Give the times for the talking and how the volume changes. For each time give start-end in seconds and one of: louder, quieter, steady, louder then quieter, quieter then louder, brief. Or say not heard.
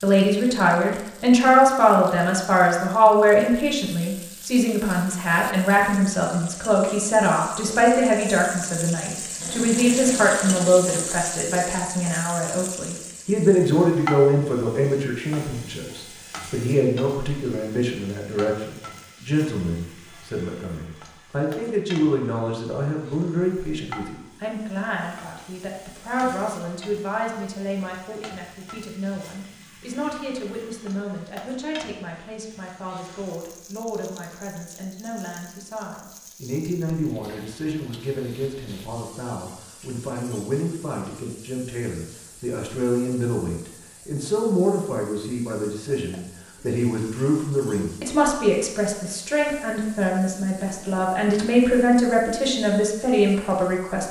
0.0-54.0 quieter then louder.